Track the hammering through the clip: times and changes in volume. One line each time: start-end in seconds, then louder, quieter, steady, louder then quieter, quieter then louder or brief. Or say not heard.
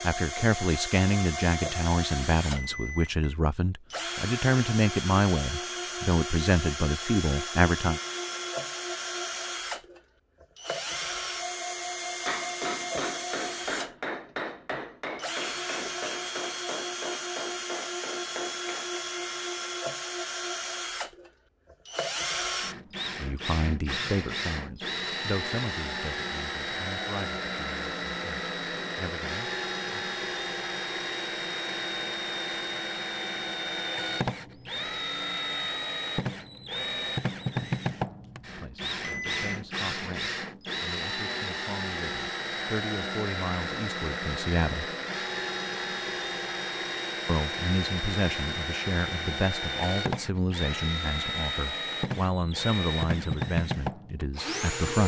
12.2-19.1 quieter.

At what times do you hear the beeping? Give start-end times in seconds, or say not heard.
2.5-3.4, 39.0-39.6.